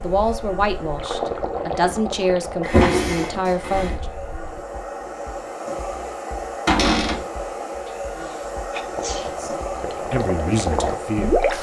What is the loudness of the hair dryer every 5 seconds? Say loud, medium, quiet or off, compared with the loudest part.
medium, loud, loud.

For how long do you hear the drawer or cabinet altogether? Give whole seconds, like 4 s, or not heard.
2 s.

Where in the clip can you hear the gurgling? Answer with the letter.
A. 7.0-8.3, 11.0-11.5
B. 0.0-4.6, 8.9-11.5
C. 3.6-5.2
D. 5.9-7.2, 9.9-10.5
B.